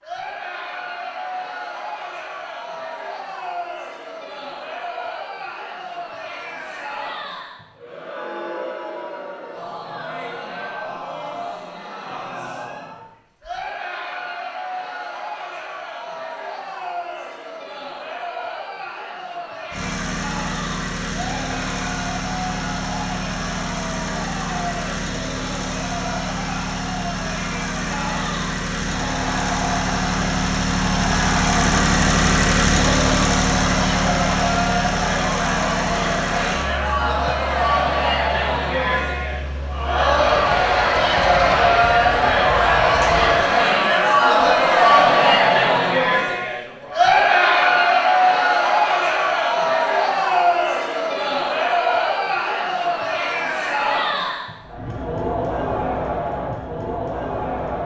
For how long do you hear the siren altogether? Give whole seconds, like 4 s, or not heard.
not heard.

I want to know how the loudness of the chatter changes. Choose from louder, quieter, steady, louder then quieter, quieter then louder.
louder.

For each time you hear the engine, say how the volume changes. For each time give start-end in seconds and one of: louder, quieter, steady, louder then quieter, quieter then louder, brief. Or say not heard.
19.7-43.5 louder then quieter.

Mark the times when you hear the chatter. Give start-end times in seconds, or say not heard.
0.0-57.8.